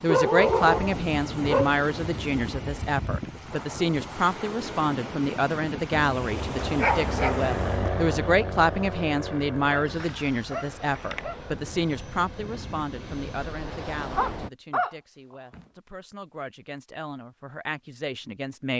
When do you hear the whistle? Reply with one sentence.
The whistle can't be heard in this clip.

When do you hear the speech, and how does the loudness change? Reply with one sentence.
The speech can be heard from 0.0 to 18.7 s, getting quieter.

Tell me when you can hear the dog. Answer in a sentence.
You can hear the dog from 0.1 to 1.7 s, from 5.9 to 7.9 s, from 9.7 to 11.4 s and from 14.2 to 15.7 s.